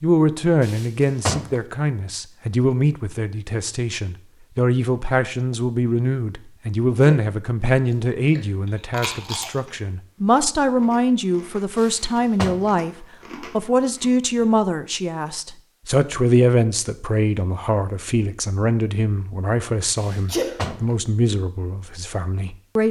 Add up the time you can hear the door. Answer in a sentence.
You can hear the door for 3 seconds altogether.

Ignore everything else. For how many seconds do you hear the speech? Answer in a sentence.
The speech can be heard for 23 seconds in total.